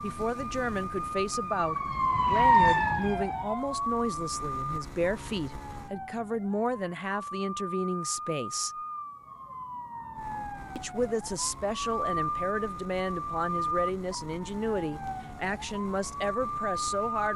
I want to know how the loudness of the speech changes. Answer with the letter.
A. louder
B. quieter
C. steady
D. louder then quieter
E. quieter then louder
C.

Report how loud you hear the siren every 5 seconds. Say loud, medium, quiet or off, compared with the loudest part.
loud, quiet, medium, medium.